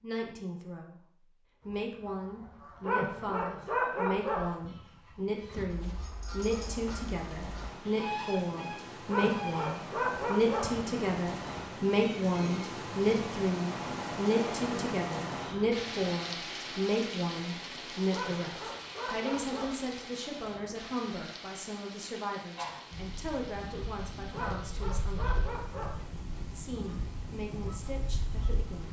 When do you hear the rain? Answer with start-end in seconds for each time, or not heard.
6.4-28.8.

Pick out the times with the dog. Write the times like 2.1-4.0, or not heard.
2.8-4.5, 9.1-10.8, 18.1-19.8, 24.3-26.0.